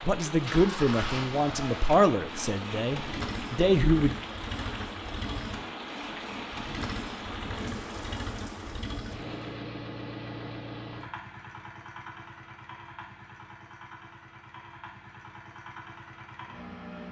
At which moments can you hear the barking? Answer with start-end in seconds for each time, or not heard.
not heard.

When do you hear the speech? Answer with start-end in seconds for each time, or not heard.
0.0-4.2.